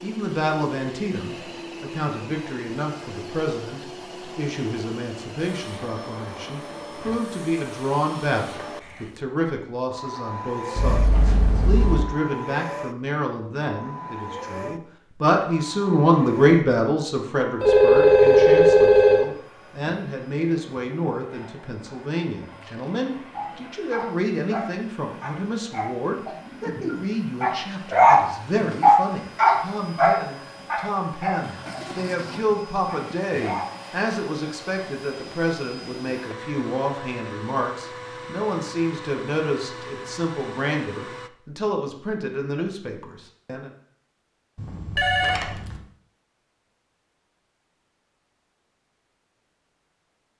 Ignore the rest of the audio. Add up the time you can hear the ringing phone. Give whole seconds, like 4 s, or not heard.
4 s.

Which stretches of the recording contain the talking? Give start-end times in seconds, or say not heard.
0.0-43.7.